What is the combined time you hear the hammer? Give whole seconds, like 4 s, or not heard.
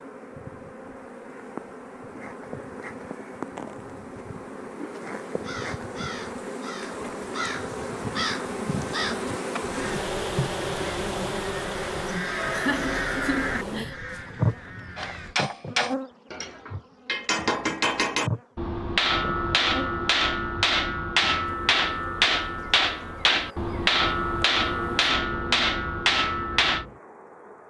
12 s.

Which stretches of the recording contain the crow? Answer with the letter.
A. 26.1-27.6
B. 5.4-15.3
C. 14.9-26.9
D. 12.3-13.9
B.